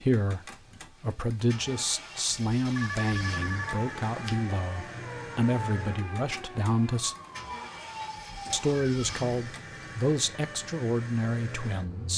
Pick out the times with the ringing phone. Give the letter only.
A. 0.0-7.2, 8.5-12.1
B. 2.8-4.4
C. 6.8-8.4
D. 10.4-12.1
B.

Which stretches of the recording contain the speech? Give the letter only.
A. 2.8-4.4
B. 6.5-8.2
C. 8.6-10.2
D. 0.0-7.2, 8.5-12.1
D.